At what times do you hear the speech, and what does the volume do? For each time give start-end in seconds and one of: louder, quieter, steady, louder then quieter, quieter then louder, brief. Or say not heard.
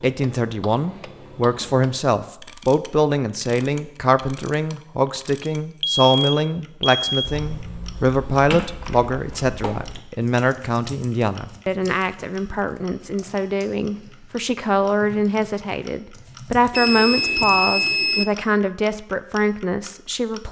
0.0-20.4 steady.